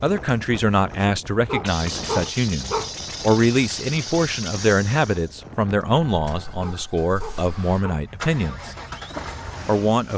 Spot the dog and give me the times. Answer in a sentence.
You can hear the dog from 1.4 to 3.0 s and from 6.6 to 8.1 s.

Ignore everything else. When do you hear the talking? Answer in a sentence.
You can hear the talking from 0.0 to 8.8 s and from 9.7 to 10.1 s.